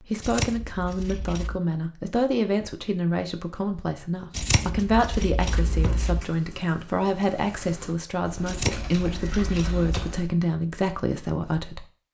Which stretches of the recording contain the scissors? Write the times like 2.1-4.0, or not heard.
0.2-1.6, 4.3-6.2, 8.4-10.2.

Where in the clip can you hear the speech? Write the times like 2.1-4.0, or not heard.
0.0-11.8.